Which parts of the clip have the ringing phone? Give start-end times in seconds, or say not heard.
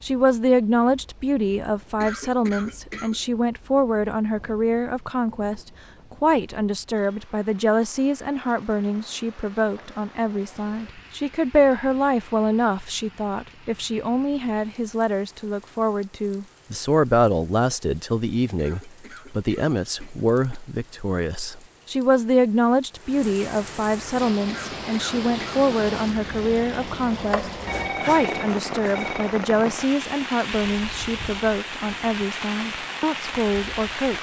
27.6-29.4.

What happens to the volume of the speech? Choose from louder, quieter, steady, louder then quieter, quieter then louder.
steady.